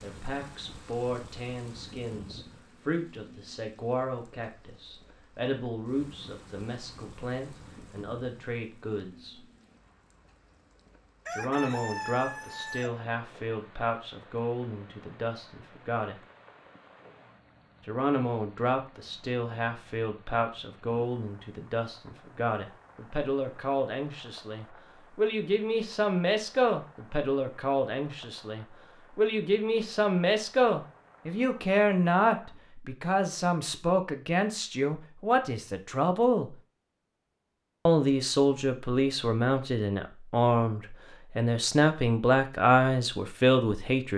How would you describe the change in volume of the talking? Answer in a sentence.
The volume of the talking goes up.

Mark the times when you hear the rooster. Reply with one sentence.
The rooster can be heard from 11.2 to 12.9 s.